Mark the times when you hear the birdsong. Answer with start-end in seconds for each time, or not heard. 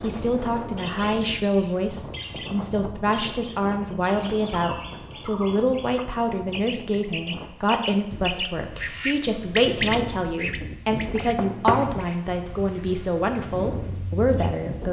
0.2-14.6.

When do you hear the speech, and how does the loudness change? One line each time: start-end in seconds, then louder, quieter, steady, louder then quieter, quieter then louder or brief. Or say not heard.
0.0-14.8 steady.